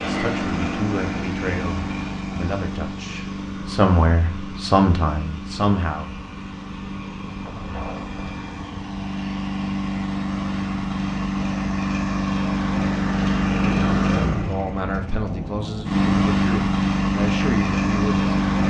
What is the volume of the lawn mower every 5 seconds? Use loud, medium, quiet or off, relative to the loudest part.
medium, medium, loud, loud.